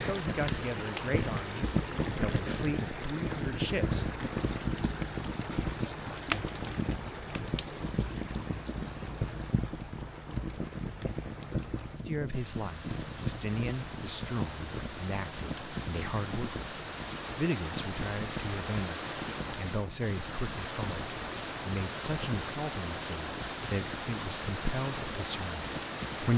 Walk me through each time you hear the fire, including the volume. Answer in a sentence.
You can hear the fire from 0.0 to 26.3 s, getting quieter.